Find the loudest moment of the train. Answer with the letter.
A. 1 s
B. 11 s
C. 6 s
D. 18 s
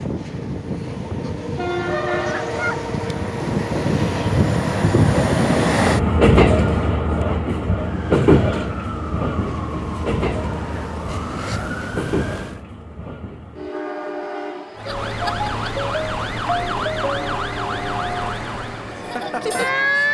C.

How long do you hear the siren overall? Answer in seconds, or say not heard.
10 s.